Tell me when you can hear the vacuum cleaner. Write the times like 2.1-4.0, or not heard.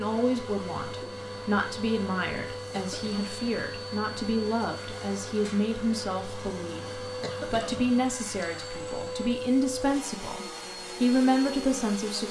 0.0-12.2.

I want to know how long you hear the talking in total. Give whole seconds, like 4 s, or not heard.
12 s.